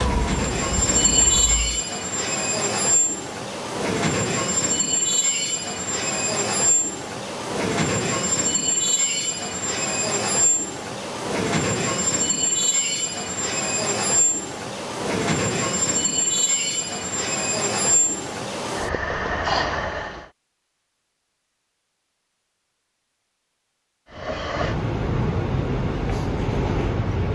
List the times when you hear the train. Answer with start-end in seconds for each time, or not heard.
0.0-20.2, 24.1-27.3.